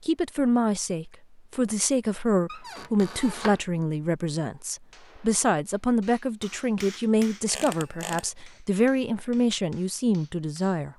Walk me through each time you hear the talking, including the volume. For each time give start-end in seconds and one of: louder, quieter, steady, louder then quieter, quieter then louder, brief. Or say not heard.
0.0-10.9 steady.